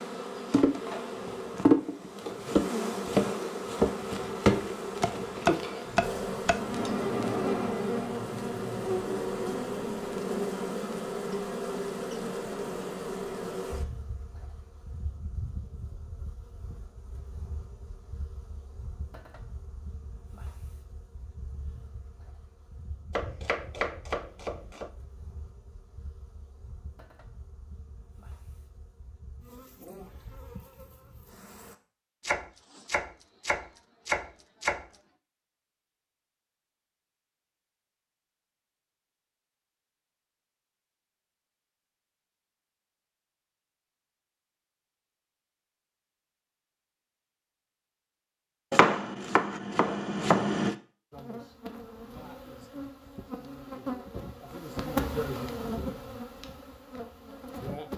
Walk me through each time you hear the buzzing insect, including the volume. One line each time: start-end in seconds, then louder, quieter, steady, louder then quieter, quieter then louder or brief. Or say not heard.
0.0-31.8 quieter
51.1-57.9 louder then quieter.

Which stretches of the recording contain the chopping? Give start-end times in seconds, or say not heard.
4.6-6.9, 23.1-24.9, 32.2-34.9, 48.7-50.8.